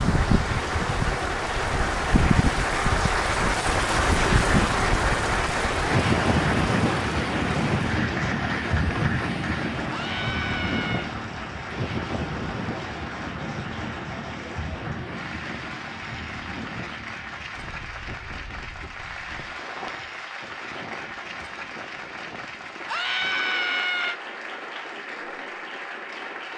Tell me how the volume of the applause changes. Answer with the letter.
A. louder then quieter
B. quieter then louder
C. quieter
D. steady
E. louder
C.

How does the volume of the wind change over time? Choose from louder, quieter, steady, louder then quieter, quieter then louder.
quieter.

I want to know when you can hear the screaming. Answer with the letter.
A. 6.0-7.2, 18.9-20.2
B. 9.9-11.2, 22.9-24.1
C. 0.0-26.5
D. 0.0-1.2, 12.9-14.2
B.